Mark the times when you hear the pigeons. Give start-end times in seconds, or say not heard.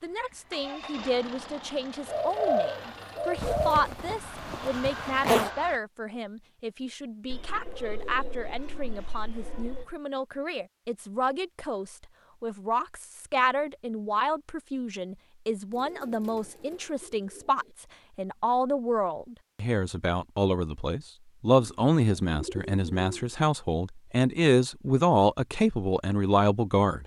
2.0-3.9, 7.3-9.8, 15.7-17.8, 21.6-23.3.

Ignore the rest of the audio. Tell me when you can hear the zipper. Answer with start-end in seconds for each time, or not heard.
3.4-5.5.